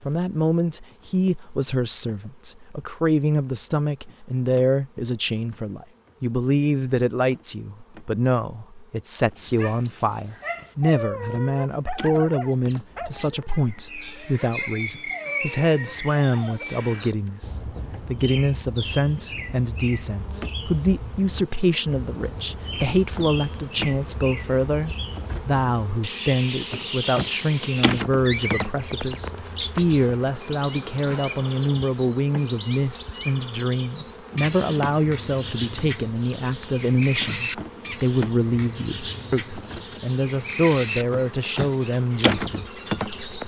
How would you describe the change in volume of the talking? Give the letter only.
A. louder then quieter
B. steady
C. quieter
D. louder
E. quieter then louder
B.